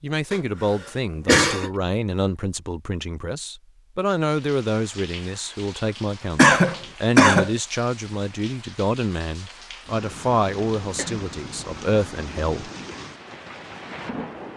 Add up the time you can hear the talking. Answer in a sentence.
You can hear the talking for 13 seconds altogether.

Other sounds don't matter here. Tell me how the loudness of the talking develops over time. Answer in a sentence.
The volume of the talking stays about the same.